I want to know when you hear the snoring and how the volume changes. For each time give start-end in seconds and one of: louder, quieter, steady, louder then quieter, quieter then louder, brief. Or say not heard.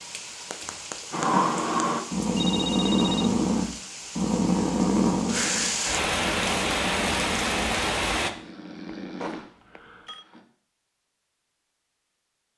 1.1-10.4 quieter.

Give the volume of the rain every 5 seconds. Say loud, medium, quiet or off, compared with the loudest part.
quiet, loud, off.